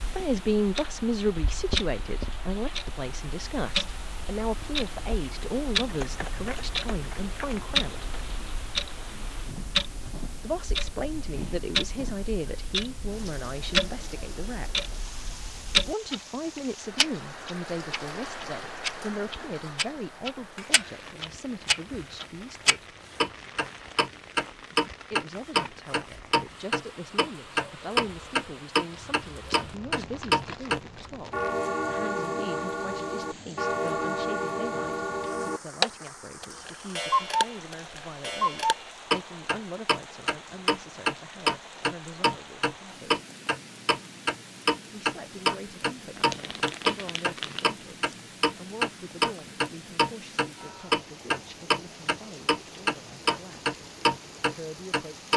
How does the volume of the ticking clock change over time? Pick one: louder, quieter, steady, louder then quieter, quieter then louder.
louder.